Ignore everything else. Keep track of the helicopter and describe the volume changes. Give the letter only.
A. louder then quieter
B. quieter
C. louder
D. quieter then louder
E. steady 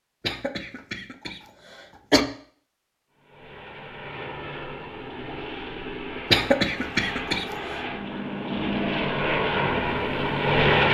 C.